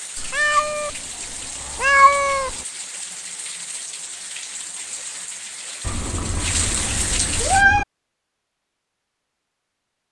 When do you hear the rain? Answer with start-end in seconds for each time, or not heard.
0.0-7.7.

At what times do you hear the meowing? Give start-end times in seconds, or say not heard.
0.1-0.9, 1.7-2.5, 5.8-7.8.